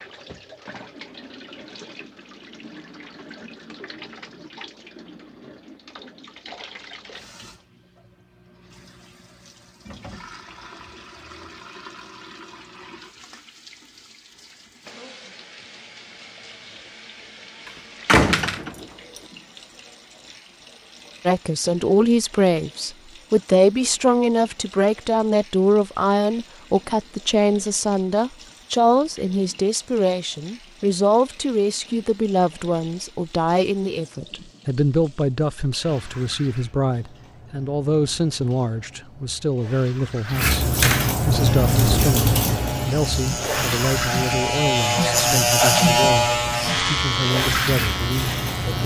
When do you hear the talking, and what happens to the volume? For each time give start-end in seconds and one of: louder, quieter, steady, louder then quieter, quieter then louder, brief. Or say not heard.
21.2-48.8 quieter.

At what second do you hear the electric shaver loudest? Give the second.
46 s.